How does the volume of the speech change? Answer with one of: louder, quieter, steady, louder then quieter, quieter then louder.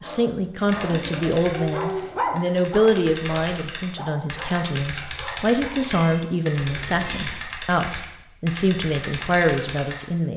steady.